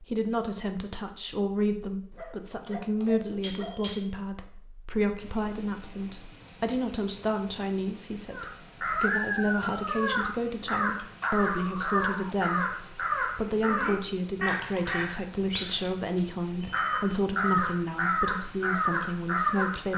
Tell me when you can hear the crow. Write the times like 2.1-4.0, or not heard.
8.3-19.9.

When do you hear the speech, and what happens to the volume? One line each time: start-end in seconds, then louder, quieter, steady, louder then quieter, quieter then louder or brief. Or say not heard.
0.0-19.9 steady.